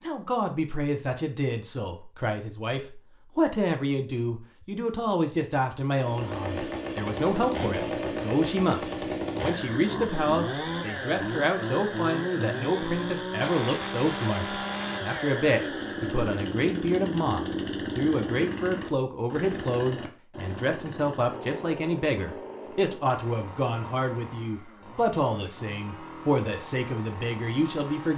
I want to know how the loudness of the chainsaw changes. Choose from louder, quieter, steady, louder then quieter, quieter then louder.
quieter.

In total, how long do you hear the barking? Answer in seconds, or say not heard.
not heard.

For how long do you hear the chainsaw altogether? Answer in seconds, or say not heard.
22 s.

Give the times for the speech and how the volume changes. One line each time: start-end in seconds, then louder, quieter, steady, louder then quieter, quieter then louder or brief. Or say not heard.
0.0-28.1 steady.